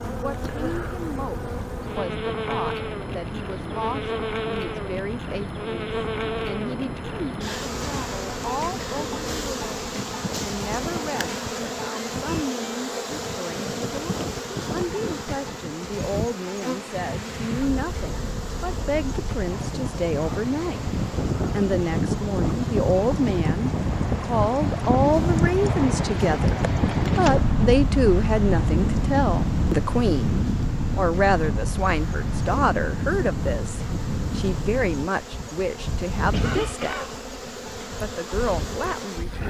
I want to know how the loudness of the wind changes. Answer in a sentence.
The volume of the wind goes up, then down.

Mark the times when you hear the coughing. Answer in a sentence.
The coughing can be heard from 36.3 to 37.2 s.